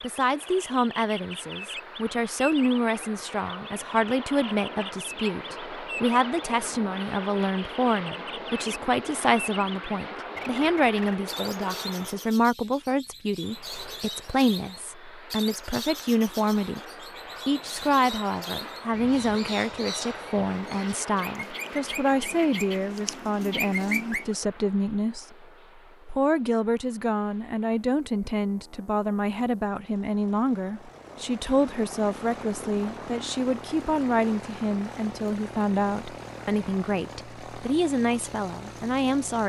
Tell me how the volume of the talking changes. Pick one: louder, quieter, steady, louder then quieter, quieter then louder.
steady.